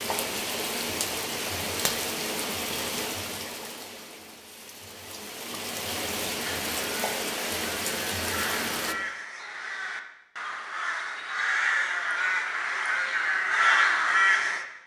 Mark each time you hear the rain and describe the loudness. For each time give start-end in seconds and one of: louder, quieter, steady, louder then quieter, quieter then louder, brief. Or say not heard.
0.0-8.9 quieter then louder.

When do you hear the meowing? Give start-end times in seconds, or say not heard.
not heard.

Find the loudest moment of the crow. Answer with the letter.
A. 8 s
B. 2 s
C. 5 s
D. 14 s
D.